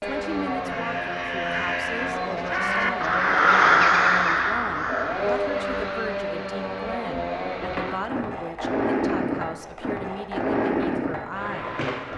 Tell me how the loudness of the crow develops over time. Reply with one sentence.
The volume of the crow goes up, then down.